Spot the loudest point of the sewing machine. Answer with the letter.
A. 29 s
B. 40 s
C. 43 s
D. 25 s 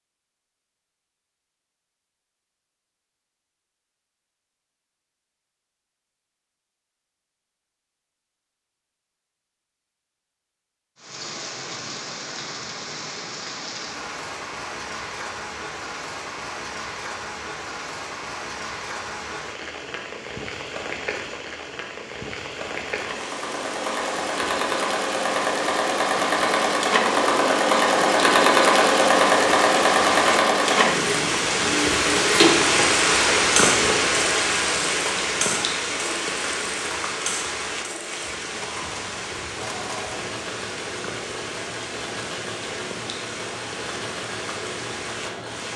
A.